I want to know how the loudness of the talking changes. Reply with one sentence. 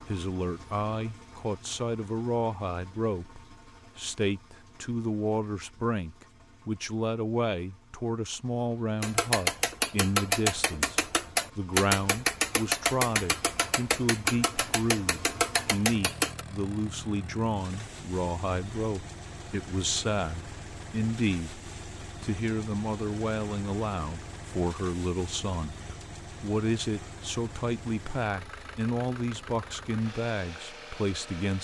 The volume of the talking stays about the same.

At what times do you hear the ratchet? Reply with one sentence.
You can hear the ratchet from 9.0 to 16.4 s.